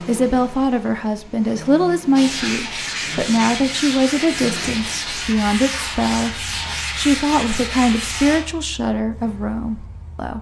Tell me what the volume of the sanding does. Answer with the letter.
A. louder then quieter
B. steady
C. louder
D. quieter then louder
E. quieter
B.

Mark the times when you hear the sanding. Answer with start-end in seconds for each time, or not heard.
2.1-8.4.